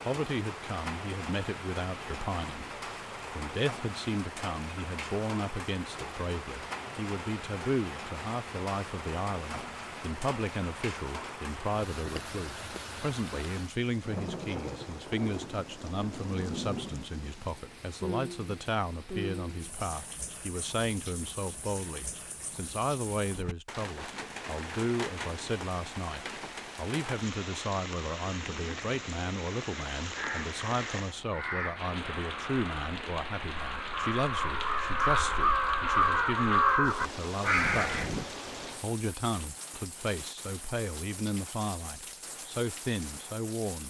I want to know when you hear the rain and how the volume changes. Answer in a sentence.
You can hear the rain from 0.0 to 43.8 s, at a steady volume.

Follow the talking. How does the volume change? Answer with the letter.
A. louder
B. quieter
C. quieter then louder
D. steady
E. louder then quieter
D.